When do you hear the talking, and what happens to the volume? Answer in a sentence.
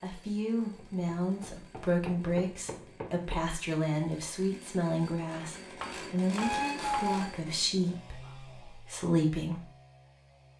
The talking can be heard from 0.0 to 9.7 s, at a steady volume.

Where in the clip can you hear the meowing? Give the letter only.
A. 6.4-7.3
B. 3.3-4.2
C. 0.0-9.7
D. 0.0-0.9
A.